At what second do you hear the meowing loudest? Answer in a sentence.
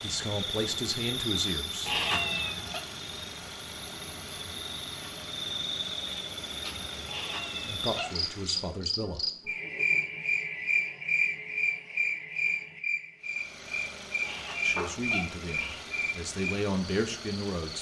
The volume of the meowing peaks at 2 seconds.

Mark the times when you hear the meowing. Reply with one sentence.
You can hear the meowing from 1.9 to 2.8 s, from 7.0 to 8.2 s and from 14.2 to 15.8 s.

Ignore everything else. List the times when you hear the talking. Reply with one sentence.
The talking can be heard from 0.0 to 2.2 s, from 7.7 to 9.2 s and from 14.6 to 17.7 s.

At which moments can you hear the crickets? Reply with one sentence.
The crickets can be heard from 0.0 to 17.7 s.